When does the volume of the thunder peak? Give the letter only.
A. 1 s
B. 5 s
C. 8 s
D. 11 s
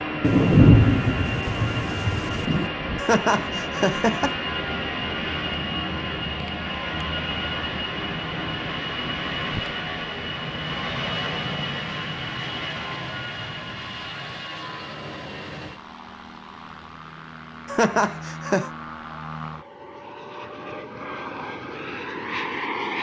A.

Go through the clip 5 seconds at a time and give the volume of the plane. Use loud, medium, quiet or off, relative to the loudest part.
loud, loud, loud, medium, loud.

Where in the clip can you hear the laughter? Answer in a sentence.
The laughter can be heard from 3.0 to 4.3 s and from 17.6 to 18.7 s.